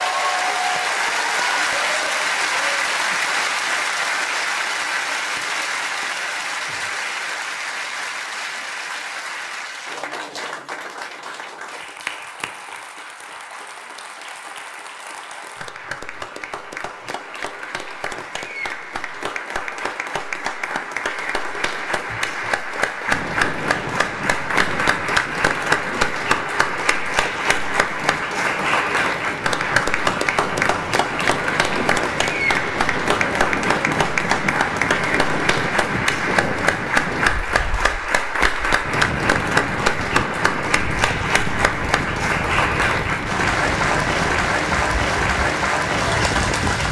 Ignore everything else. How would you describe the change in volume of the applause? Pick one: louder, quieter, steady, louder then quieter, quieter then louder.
quieter then louder.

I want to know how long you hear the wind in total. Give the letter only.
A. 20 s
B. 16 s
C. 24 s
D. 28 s
C.